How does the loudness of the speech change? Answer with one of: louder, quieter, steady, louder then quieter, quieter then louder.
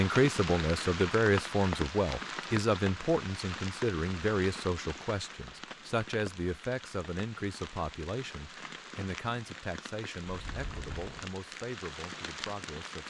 quieter.